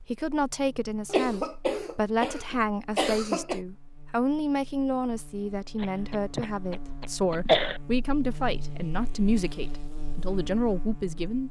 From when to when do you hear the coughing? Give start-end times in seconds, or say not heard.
1.1-3.6, 5.8-7.8.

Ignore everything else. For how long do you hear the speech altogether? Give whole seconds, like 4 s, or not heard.
11 s.